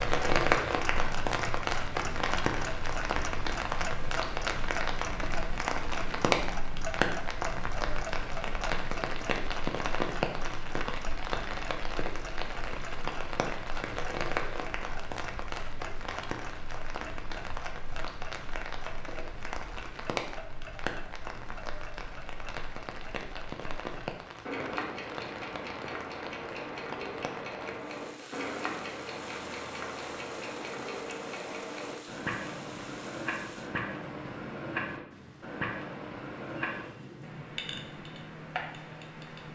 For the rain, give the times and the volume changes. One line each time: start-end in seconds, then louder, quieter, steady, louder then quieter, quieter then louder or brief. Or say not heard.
0.0-39.5 quieter.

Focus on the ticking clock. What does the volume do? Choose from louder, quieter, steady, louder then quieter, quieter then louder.
quieter then louder.